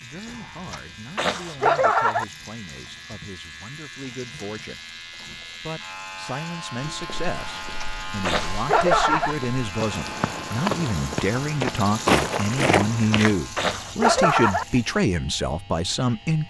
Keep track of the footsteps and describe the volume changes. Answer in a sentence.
The loudness of the footsteps goes up.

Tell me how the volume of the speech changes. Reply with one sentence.
The loudness of the speech goes up.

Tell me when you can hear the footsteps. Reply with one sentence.
The footsteps can be heard from 6.8 to 13.4 s.